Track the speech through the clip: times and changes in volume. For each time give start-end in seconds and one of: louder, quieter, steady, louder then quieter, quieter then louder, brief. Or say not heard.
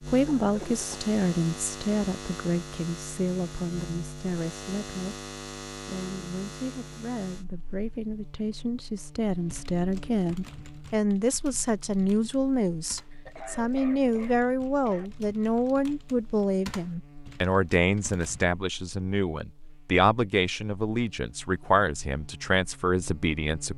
0.1-5.2 quieter
5.8-23.7 louder.